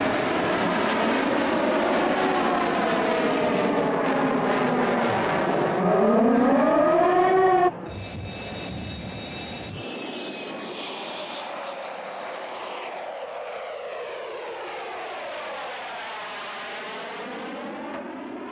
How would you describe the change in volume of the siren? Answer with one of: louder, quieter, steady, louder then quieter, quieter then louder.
louder.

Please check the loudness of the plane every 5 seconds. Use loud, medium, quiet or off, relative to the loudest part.
loud, medium, medium, medium.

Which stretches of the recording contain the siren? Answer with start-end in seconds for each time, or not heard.
0.0-7.7.